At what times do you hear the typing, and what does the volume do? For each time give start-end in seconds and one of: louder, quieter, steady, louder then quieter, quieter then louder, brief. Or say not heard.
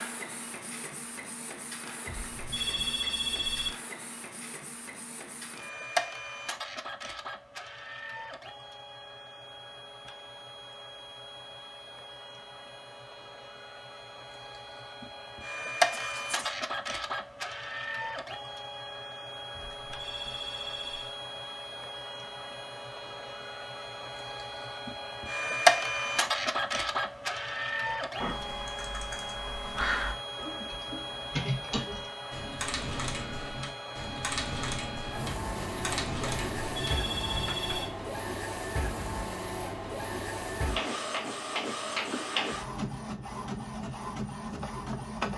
27.9-38.0 steady.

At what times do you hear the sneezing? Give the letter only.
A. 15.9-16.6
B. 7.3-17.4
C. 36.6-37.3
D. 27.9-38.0
A.